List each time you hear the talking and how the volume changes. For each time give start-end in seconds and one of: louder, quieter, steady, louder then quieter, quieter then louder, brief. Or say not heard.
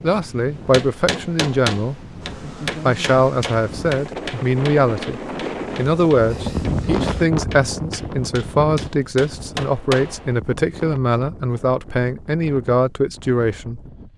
0.0-2.0 brief
2.9-13.8 steady.